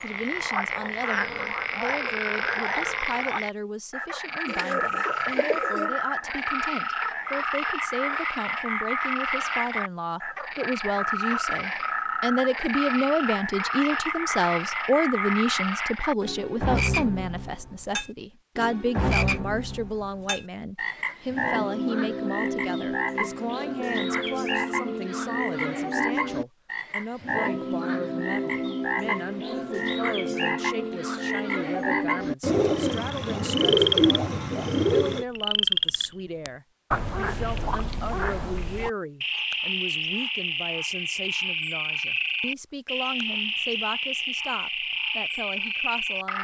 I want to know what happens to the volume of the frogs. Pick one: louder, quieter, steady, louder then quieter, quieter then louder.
steady.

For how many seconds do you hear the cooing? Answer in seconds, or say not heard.
4 s.